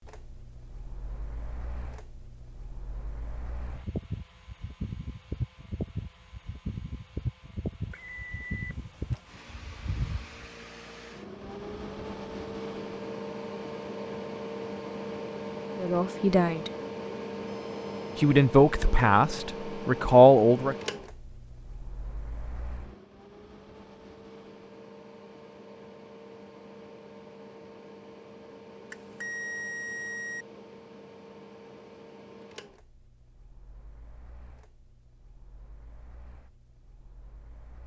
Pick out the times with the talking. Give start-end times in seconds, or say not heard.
15.8-16.7, 18.1-20.8.